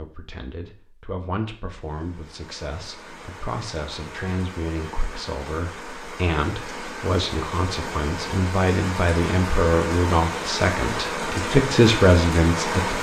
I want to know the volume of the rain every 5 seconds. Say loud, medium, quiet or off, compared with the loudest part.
quiet, medium, loud.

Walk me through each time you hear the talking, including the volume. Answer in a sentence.
The talking can be heard from 0.0 to 12.9 s, getting louder.